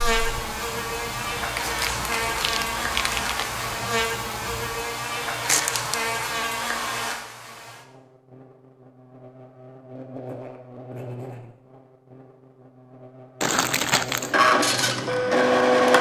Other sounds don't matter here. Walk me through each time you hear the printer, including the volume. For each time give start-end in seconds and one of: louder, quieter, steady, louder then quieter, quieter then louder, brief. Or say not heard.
0.0-4.8 steady
14.2-15.9 brief.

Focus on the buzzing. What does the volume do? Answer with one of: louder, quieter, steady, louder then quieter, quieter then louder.
quieter.